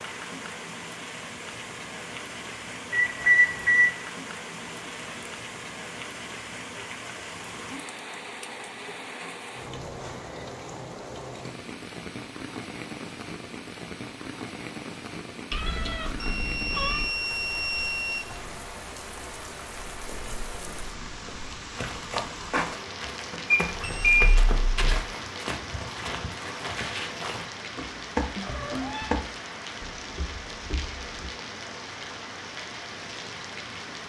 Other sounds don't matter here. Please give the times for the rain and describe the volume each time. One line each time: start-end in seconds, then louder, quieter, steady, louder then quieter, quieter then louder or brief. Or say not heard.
0.0-34.0 steady.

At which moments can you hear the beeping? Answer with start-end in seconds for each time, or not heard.
2.9-4.0, 16.2-18.2, 23.5-25.0.